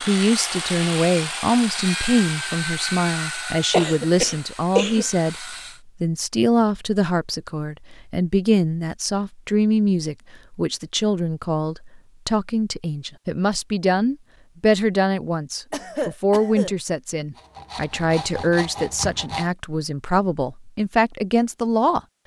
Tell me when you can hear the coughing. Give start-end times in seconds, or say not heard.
3.7-5.0, 15.7-16.8.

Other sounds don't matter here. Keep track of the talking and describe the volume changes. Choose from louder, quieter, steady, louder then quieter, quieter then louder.
steady.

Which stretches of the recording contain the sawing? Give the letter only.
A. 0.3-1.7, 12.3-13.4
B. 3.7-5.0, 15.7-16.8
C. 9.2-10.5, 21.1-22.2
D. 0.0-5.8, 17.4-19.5
D.